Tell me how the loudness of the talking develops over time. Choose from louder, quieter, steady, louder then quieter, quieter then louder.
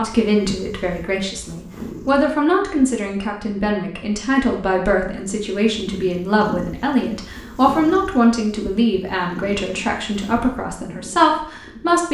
steady.